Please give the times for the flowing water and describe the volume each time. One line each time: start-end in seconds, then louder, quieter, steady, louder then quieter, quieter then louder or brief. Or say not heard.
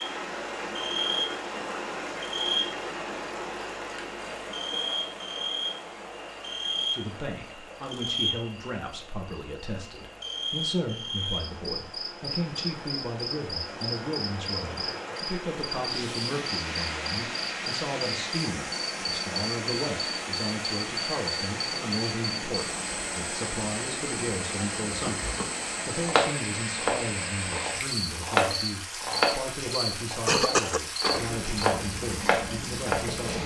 0.0-33.4 quieter then louder.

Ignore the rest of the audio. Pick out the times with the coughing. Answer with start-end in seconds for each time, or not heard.
30.1-31.6.